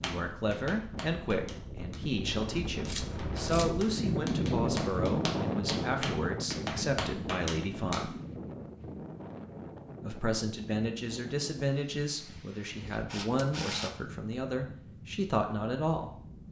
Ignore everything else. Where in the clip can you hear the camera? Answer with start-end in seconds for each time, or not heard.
2.9-3.7, 13.1-14.3.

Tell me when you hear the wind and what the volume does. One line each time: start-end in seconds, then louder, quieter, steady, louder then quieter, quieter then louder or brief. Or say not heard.
0.0-16.4 louder then quieter.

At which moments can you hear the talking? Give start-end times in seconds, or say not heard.
0.0-8.2, 10.0-16.1.